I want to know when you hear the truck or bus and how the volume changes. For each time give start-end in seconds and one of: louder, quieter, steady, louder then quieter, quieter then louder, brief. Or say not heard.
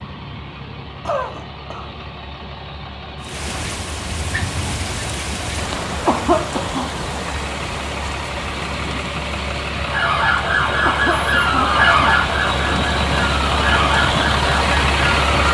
0.0-15.5 louder.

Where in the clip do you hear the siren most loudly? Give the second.
12 s.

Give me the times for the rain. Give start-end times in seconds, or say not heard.
3.2-15.5.